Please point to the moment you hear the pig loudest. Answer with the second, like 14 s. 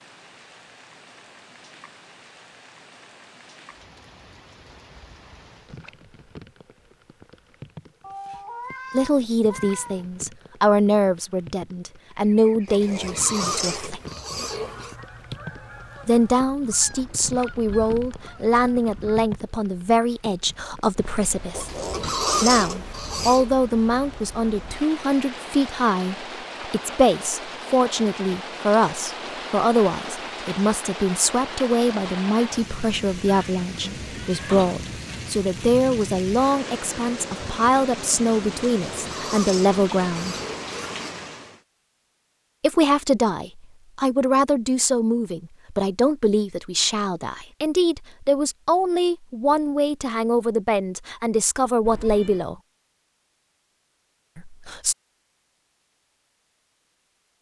22 s.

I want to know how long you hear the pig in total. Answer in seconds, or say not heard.
7 s.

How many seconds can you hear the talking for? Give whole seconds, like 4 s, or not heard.
39 s.